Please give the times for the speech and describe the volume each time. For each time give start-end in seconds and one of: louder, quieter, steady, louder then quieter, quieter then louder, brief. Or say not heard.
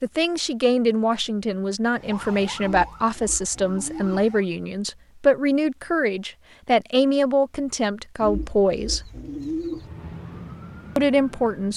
0.0-9.0 steady
10.9-11.7 brief.